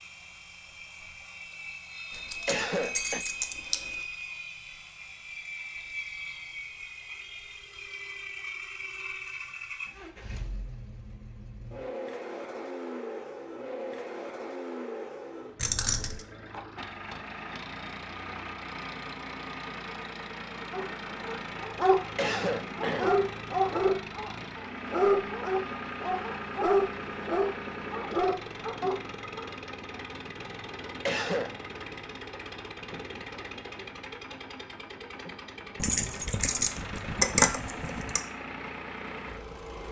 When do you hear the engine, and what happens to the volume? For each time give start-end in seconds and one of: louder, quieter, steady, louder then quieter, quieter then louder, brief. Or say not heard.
0.0-39.8 steady.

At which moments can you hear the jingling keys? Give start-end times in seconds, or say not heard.
2.1-3.8, 15.6-16.2, 35.8-38.2.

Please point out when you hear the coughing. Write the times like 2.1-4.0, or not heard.
2.5-3.2, 22.1-23.2, 31.1-31.6.